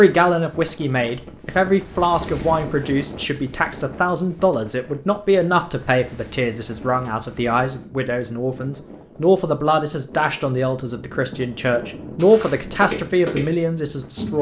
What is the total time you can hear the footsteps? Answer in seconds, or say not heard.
2 s.